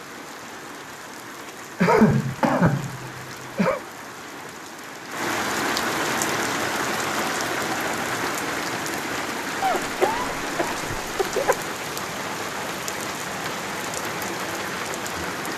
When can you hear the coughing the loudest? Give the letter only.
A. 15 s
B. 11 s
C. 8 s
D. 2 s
D.